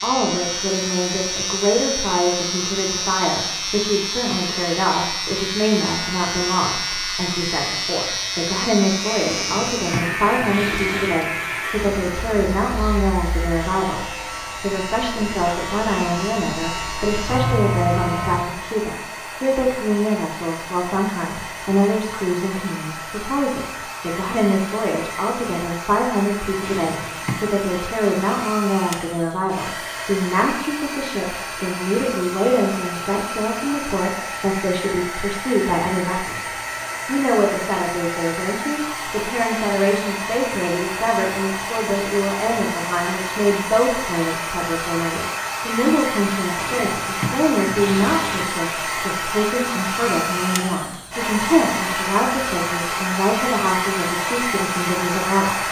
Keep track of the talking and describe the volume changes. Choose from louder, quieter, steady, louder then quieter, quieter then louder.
steady.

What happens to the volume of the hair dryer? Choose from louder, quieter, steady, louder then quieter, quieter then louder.
louder.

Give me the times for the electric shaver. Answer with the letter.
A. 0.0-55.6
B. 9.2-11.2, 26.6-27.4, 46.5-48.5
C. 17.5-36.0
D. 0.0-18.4
D.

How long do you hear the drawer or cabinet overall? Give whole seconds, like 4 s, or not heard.
5 s.